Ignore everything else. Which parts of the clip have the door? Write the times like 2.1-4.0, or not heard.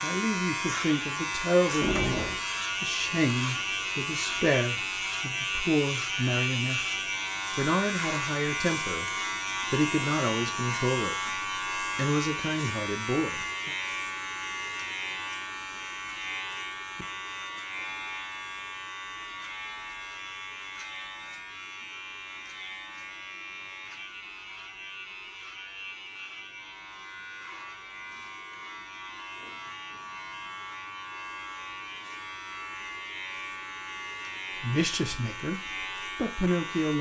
1.8-2.4.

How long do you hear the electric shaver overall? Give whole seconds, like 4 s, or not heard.
37 s.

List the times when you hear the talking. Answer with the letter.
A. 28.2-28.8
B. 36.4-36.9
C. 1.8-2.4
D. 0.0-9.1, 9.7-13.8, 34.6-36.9
D.